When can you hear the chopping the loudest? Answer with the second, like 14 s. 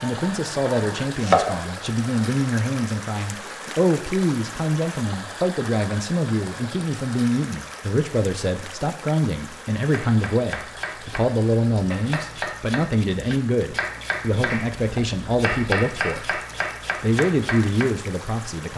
1 s.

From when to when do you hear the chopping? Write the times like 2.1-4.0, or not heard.
0.0-1.6, 9.8-18.1.